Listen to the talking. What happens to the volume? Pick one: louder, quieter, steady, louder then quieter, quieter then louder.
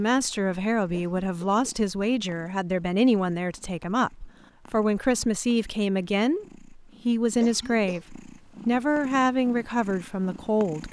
steady.